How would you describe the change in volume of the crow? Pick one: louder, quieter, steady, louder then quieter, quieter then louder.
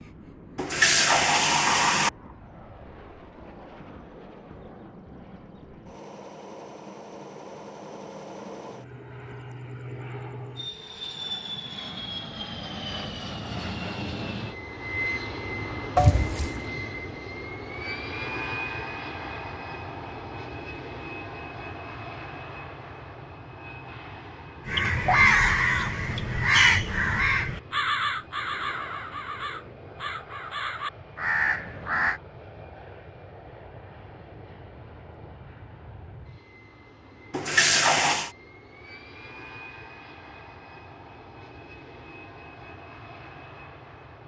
quieter then louder.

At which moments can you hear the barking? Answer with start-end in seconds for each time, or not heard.
not heard.